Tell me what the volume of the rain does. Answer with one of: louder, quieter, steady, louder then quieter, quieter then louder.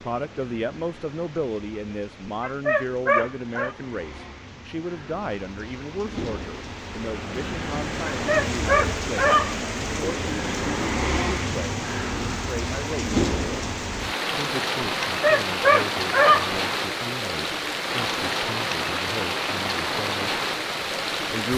louder.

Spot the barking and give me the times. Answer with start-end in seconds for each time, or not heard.
2.2-3.8, 8.1-9.7, 15.1-16.6.